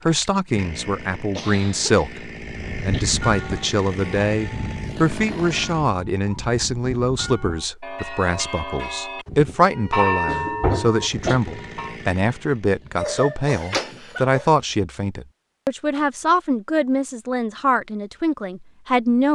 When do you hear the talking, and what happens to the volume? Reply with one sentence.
You can hear the talking from 0.1 to 19.3 s, at a steady volume.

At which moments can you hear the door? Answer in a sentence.
The door can be heard from 13.6 to 14.2 s.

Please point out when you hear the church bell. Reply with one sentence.
You can hear the church bell from 2.5 to 11.9 s.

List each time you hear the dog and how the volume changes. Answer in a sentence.
You can't hear the dog here.